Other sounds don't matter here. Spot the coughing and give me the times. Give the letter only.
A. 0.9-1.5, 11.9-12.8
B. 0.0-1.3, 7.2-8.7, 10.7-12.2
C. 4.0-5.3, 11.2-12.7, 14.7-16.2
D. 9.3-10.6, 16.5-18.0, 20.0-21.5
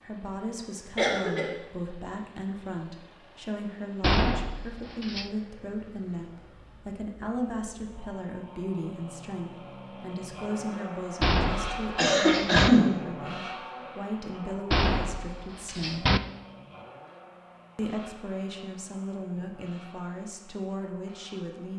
A.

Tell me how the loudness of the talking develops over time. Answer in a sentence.
The volume of the talking stays about the same.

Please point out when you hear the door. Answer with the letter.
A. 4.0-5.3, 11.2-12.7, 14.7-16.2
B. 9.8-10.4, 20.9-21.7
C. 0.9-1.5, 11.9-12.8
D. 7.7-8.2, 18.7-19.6
A.